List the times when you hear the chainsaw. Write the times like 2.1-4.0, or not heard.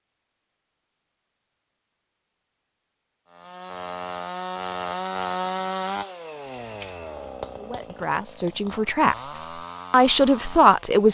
3.3-11.0.